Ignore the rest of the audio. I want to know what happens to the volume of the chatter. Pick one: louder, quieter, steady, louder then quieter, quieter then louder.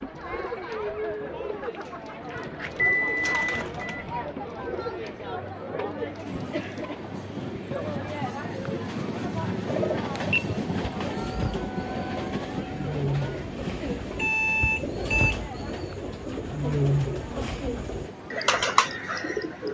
quieter.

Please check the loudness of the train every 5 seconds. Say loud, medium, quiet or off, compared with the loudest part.
off, loud, loud, medium.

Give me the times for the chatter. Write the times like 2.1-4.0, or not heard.
0.0-19.6.